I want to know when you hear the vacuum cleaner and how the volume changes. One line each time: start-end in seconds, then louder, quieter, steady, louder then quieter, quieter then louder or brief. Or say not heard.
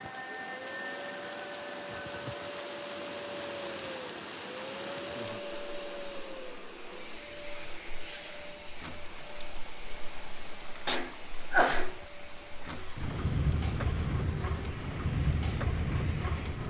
0.0-16.6 quieter.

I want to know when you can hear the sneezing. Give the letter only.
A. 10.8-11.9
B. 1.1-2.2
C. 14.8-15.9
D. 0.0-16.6
A.